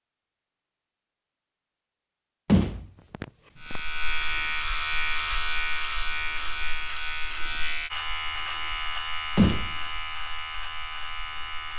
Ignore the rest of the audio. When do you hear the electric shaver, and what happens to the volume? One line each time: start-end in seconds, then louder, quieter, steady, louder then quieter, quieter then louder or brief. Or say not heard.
3.6-11.7 quieter.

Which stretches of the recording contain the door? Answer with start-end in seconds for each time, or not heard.
2.5-3.8, 9.3-9.8.